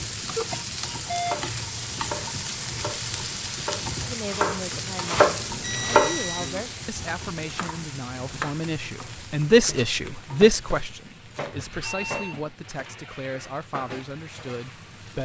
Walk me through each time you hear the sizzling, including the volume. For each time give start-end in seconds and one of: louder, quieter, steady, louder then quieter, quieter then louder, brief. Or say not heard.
0.0-15.2 quieter.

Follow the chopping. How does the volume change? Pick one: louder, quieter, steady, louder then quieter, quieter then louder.
louder then quieter.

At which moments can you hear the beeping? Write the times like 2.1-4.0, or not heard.
0.3-1.4, 5.5-6.5, 11.8-12.4.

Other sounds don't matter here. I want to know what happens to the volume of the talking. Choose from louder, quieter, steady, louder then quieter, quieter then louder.
louder then quieter.